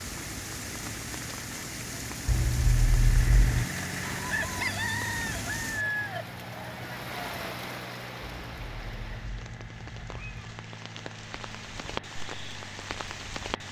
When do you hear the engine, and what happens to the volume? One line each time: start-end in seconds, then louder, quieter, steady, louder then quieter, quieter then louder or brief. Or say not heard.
0.0-13.6 louder then quieter.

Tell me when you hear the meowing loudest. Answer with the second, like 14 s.
3 s.